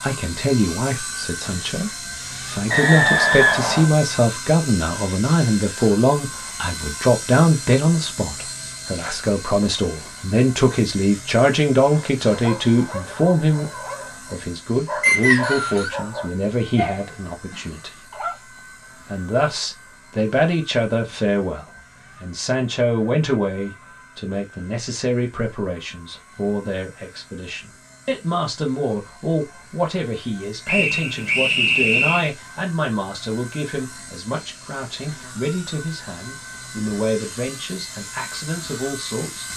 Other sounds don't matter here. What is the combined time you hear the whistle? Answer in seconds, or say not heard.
4 s.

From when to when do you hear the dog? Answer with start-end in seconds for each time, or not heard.
12.2-18.4.